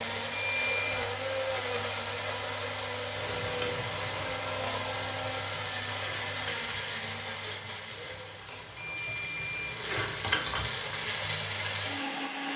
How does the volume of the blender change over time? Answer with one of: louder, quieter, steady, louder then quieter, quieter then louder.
quieter then louder.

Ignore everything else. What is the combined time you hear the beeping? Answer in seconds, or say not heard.
2 s.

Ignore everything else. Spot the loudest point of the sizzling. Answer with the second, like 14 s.
10 s.